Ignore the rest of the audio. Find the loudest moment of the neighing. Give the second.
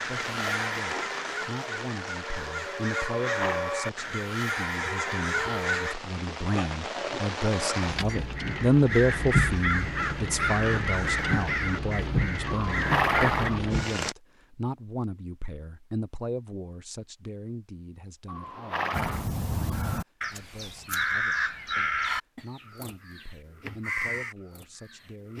13 s.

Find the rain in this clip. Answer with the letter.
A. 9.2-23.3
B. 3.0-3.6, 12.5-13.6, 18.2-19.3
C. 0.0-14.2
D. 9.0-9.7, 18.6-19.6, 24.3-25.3
C.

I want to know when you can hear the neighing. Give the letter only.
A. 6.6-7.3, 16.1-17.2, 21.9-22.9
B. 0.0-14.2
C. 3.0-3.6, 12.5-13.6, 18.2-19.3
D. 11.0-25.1
C.